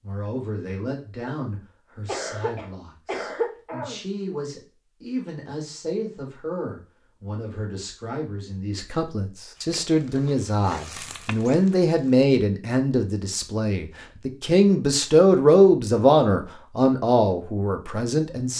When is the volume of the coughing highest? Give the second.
3 s.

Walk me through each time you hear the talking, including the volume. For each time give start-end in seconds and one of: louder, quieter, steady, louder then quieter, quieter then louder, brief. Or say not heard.
0.0-18.5 louder.